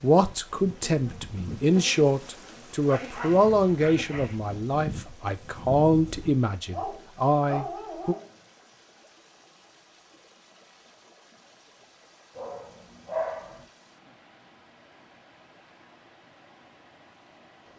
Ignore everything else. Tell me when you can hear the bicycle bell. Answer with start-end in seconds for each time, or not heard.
not heard.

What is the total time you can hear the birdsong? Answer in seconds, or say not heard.
not heard.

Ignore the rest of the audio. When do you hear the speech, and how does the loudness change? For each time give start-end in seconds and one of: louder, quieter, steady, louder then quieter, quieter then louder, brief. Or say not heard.
0.0-8.2 steady.